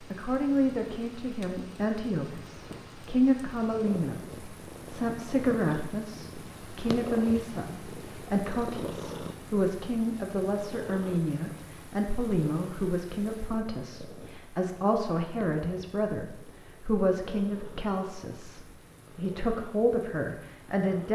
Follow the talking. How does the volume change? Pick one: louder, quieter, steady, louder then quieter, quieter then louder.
steady.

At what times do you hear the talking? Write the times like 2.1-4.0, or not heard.
0.0-21.0.